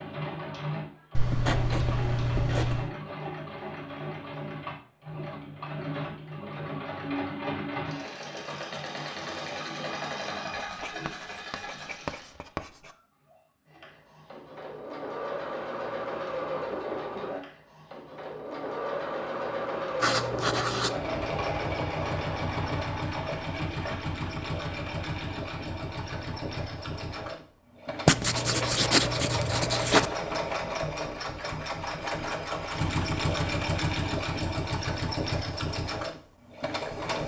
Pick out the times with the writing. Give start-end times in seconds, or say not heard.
1.1-2.9, 10.6-12.9, 20.0-20.9, 28.1-30.1.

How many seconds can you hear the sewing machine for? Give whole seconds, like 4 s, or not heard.
37 s.